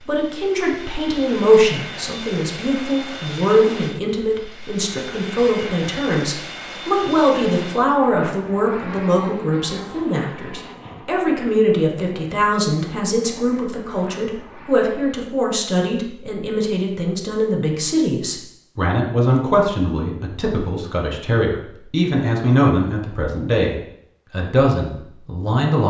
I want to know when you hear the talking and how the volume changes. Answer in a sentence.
The talking can be heard from 0.0 to 25.8 s, at a steady volume.